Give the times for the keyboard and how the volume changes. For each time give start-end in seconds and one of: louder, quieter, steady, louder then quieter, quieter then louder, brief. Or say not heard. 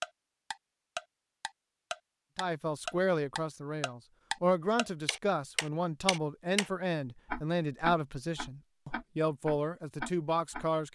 not heard.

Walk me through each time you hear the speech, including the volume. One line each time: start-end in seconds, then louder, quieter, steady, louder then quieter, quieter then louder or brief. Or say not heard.
2.4-10.8 steady.